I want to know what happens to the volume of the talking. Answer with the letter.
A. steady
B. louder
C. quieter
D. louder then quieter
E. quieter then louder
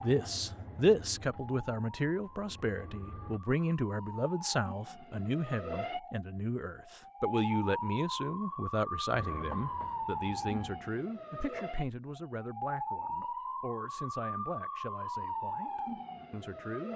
C.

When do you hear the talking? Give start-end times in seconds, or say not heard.
0.0-16.9.